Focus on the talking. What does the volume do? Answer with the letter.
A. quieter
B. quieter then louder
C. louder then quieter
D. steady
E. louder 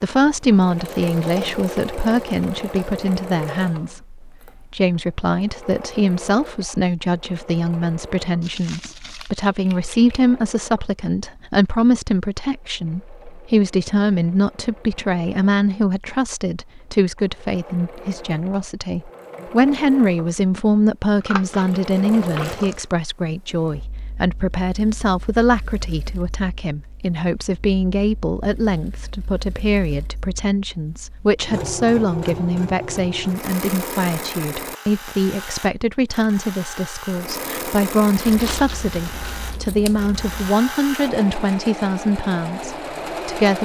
D.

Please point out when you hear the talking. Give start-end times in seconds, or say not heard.
0.0-43.5.